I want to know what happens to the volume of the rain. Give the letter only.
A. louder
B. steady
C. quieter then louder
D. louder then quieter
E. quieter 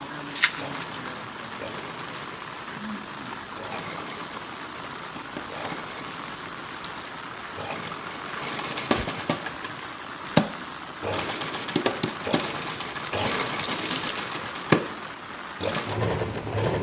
B.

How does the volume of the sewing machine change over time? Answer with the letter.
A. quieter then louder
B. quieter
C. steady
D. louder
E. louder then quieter
D.